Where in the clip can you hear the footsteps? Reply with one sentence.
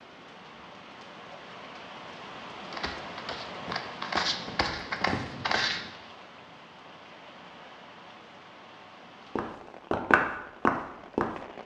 The footsteps can be heard from 2.6 to 5.9 s and from 9.3 to 11.4 s.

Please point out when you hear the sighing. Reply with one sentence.
You can't hear the sighing here.